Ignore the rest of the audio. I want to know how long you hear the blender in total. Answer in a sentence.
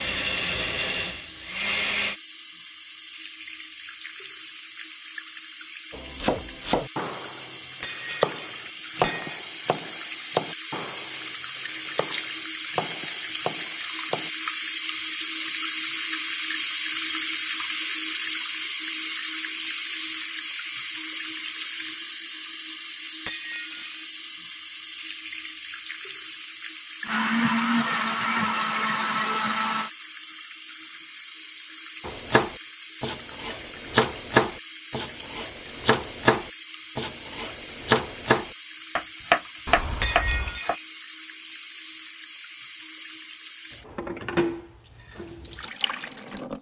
The blender can be heard for 5 seconds in total.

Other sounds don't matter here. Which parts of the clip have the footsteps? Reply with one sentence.
You can't hear the footsteps here.